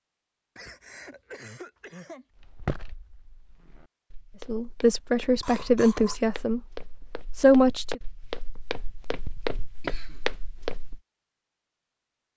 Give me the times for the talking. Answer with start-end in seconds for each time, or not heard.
4.5-8.0.